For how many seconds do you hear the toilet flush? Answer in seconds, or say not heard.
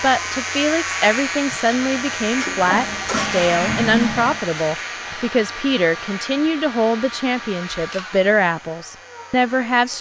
2 s.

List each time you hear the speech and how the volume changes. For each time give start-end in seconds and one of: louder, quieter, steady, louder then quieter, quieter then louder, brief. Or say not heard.
0.0-9.9 steady.